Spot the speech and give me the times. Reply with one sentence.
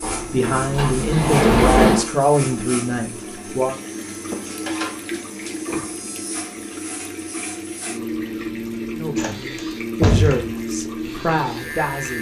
The speech can be heard from 0.3 to 3.8 s and from 8.9 to 12.1 s.